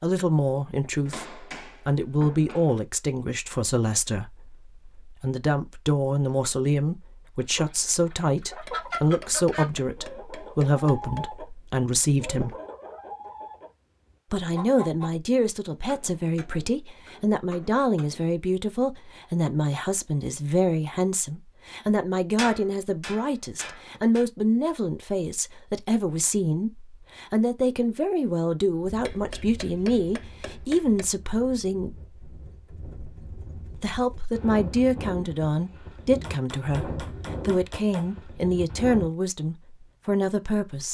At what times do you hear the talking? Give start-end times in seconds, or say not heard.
0.0-12.6, 14.3-32.0, 33.8-40.8.